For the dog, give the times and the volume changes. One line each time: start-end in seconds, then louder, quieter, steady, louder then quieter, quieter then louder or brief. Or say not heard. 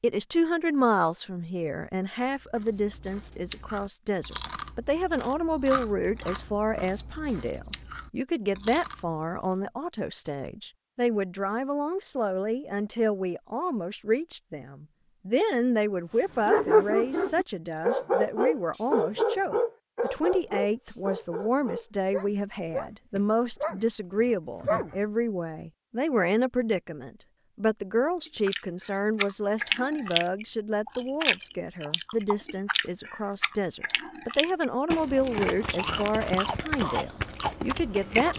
16.4-24.9 quieter.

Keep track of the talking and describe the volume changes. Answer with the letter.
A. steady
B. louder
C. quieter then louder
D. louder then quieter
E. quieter
A.